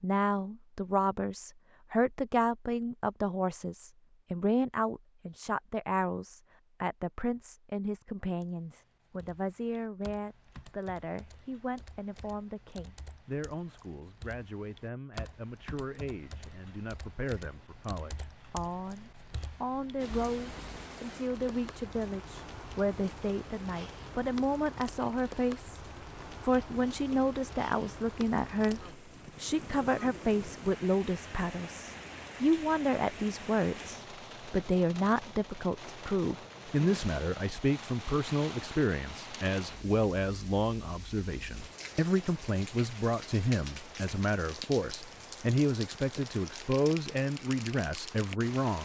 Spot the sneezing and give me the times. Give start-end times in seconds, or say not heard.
not heard.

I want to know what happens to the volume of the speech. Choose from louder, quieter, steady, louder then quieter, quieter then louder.
quieter then louder.